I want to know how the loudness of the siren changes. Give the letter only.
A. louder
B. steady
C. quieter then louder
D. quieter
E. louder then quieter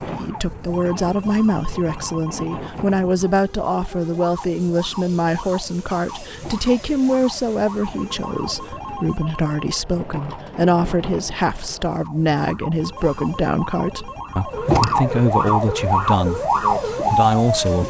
A.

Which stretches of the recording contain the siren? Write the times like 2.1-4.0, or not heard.
0.0-17.8.